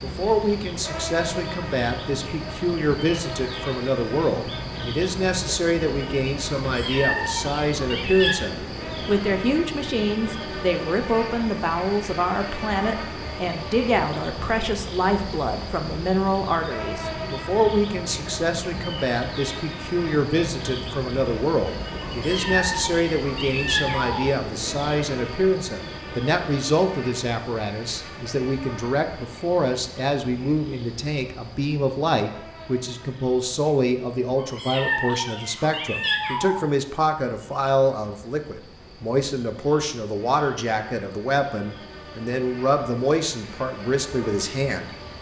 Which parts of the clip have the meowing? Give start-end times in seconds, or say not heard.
6.7-8.3, 22.0-24.2, 34.4-36.6.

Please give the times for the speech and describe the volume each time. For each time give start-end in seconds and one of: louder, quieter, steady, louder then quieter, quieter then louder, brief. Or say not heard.
0.0-44.9 steady.